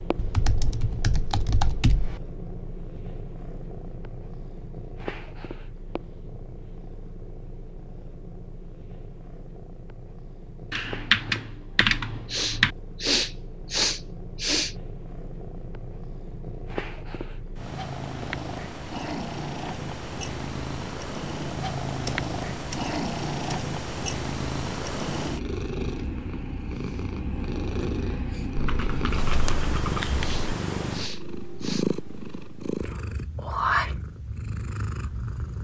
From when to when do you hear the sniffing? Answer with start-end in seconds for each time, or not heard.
12.3-14.8, 30.2-31.9.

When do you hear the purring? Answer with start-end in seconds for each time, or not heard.
0.0-35.5.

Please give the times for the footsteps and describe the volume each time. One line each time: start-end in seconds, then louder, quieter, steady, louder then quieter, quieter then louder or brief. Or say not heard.
not heard.